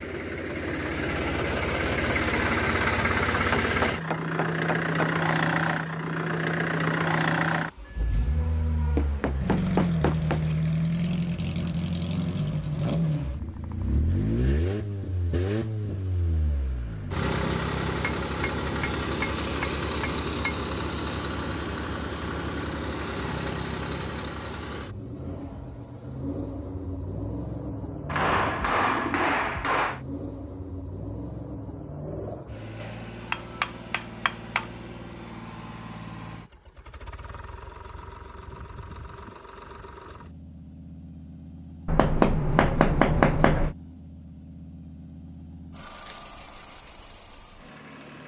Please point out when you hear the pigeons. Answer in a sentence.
You can hear the pigeons from 28.3 to 29.8 s.